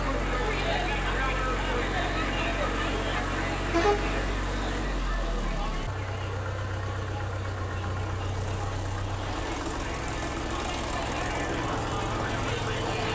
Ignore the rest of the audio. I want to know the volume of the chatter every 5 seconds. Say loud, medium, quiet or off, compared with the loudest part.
loud, medium, loud.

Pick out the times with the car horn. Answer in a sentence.
You can hear the car horn from 3.7 to 4.3 s.